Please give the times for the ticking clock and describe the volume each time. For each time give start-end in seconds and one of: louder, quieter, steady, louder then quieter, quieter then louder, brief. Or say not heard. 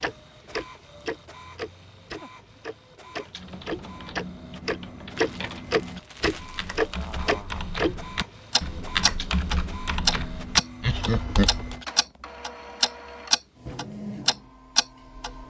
0.0-15.3 louder.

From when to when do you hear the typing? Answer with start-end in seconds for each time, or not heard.
3.2-11.8.